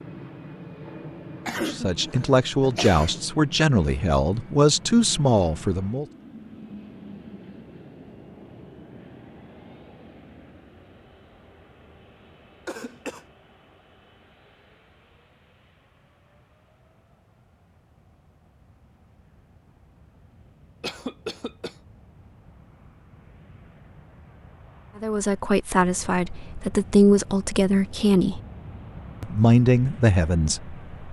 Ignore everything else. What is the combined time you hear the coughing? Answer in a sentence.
The coughing can be heard for 3 seconds in total.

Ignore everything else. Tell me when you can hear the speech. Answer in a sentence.
The speech can be heard from 1.6 to 6.0 s, from 24.9 to 28.4 s and from 29.2 to 30.8 s.